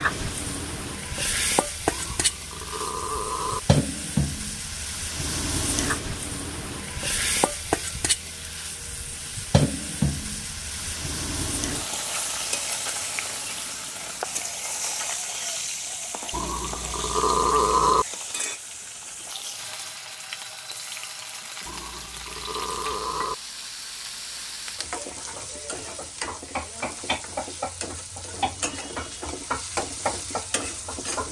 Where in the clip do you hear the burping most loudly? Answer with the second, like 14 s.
18 s.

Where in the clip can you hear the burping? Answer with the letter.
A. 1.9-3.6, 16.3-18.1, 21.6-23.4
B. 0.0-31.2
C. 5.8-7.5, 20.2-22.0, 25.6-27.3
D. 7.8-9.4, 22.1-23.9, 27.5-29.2
A.